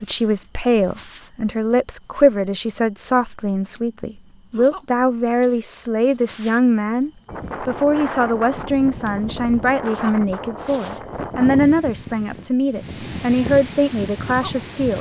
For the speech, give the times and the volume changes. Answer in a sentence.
You can hear the speech from 0.0 to 14.9 s, at a steady volume.